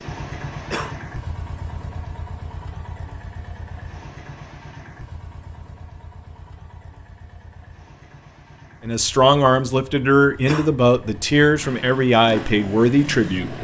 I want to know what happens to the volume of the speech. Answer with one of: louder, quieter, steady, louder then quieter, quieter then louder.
steady.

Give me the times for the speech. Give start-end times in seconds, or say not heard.
8.8-13.5.